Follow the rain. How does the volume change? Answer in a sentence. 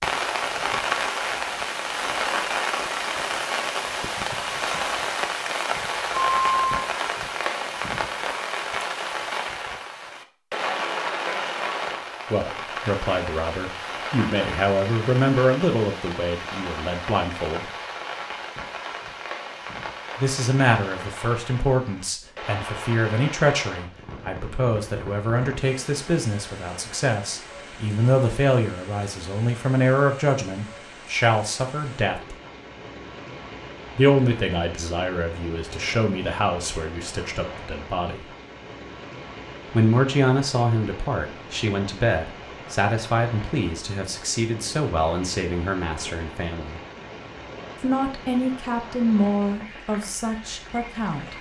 The volume of the rain goes down.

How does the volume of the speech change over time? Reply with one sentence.
The volume of the speech stays about the same.